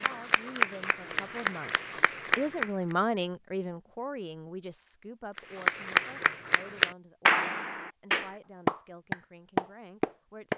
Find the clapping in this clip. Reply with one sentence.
The clapping can be heard from 0.0 to 3.0 s and from 5.3 to 10.5 s.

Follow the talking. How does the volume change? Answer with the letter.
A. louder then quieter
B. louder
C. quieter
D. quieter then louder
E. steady
A.